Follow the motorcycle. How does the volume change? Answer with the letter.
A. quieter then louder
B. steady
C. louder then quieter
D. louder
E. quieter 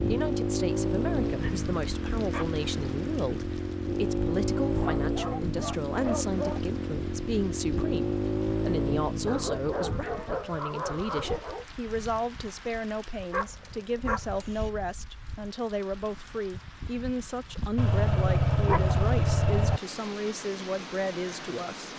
B.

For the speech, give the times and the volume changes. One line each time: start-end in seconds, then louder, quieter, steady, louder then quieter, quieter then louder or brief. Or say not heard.
0.1-21.9 steady.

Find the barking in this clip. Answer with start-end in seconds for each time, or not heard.
1.2-2.6, 4.8-6.6, 9.2-11.7, 13.3-14.7, 17.8-19.8.